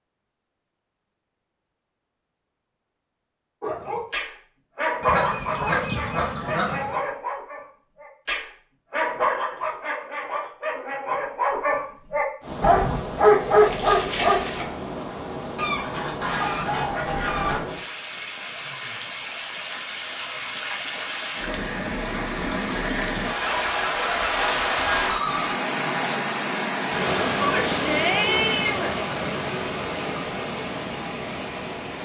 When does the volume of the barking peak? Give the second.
13 s.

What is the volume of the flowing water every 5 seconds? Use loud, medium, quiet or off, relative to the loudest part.
off, off, medium, medium, loud, loud, medium.